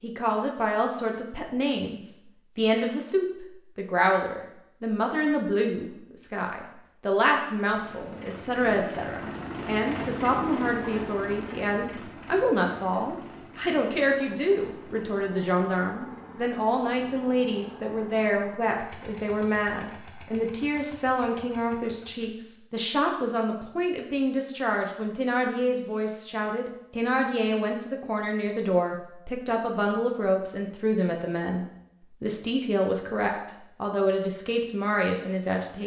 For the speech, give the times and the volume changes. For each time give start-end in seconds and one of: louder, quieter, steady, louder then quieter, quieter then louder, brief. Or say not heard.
0.0-35.8 steady.